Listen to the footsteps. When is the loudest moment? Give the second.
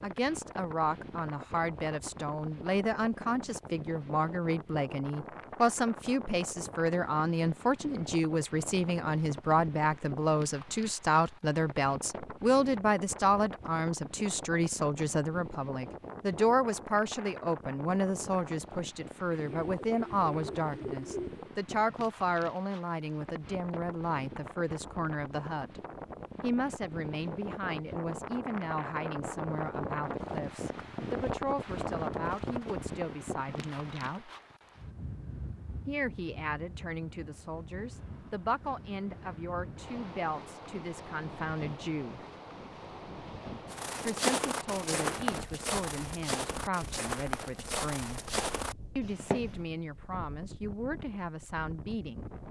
44 s.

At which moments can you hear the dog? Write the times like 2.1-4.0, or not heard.
not heard.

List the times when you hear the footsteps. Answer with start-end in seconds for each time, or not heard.
43.7-49.6.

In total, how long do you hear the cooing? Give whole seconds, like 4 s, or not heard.
2 s.